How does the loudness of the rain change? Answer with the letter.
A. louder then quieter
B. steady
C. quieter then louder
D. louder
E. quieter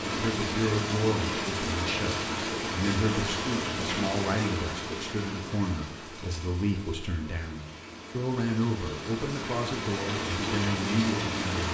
C.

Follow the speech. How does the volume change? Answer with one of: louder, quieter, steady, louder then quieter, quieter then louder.
steady.